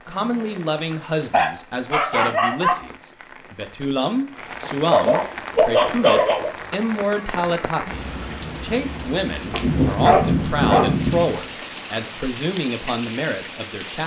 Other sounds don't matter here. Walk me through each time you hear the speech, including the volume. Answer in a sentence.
You can hear the speech from 0.1 to 14.0 s, at a steady volume.